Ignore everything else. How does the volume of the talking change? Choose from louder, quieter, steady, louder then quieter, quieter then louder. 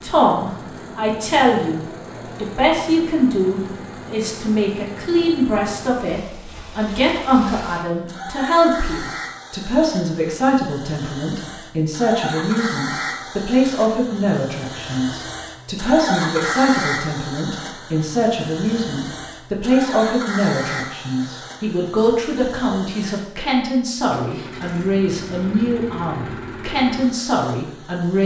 steady.